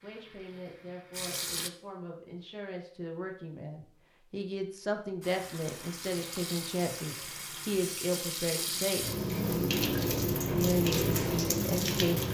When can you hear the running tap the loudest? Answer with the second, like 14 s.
10 s.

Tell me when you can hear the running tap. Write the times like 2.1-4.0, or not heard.
0.0-1.7, 5.2-12.2.